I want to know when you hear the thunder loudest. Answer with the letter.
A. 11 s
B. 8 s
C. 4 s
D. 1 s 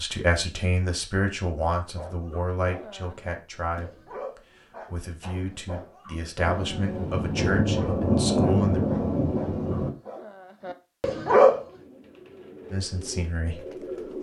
B.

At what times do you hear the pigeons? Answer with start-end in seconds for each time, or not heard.
11.6-14.1.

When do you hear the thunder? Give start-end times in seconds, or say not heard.
6.5-9.9.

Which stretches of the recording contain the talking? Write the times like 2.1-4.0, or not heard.
0.0-8.8, 12.7-14.1.